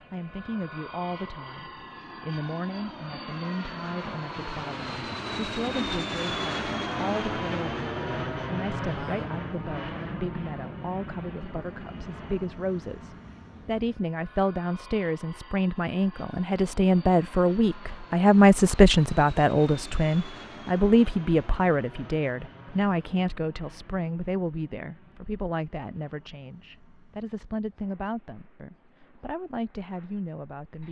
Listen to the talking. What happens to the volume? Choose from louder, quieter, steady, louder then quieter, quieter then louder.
louder then quieter.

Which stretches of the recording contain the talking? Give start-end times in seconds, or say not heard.
0.1-30.8.